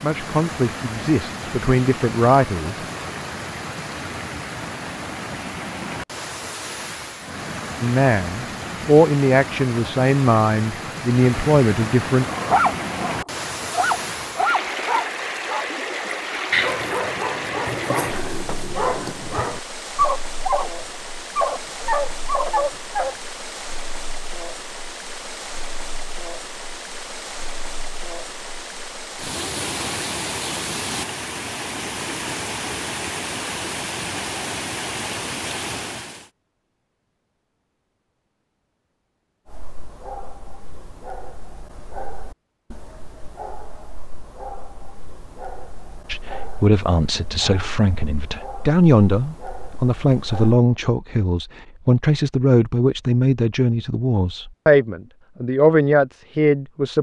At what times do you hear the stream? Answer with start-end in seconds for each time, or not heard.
0.0-36.3.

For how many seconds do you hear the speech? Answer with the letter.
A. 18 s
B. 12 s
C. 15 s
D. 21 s
A.